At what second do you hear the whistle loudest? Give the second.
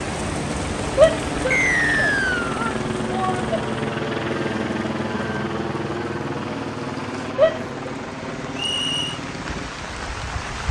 2 s.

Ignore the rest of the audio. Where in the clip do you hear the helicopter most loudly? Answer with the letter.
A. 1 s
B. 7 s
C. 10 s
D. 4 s
D.